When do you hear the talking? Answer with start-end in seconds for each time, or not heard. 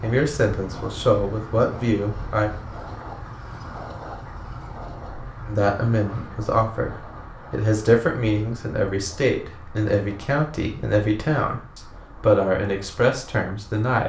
0.0-2.5, 5.5-14.0.